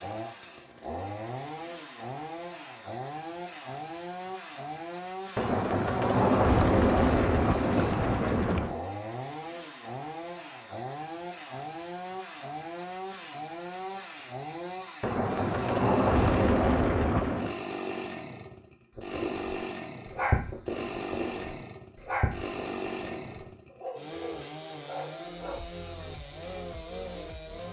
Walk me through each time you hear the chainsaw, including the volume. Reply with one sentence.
You can hear the chainsaw from 0.0 to 27.6 s, at a steady volume.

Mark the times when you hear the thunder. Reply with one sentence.
You can hear the thunder from 5.3 to 8.8 s and from 15.0 to 17.6 s.